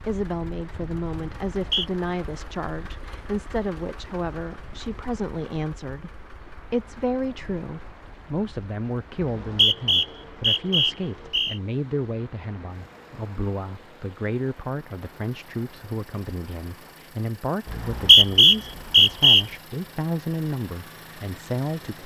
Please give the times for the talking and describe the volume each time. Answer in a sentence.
You can hear the talking from 0.0 to 22.0 s, at a steady volume.